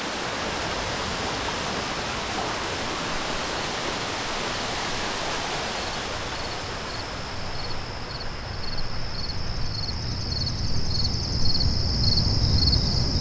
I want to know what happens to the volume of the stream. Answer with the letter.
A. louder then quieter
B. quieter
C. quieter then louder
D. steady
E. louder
B.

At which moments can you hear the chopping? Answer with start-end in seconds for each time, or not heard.
not heard.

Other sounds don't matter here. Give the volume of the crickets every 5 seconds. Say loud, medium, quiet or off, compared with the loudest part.
quiet, quiet, loud.